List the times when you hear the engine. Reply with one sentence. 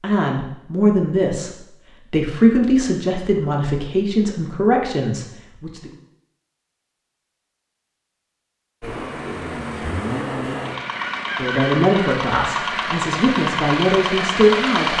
The engine can be heard from 8.8 to 14.9 s.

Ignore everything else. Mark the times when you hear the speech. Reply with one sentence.
You can hear the speech from 0.0 to 5.9 s and from 11.3 to 14.9 s.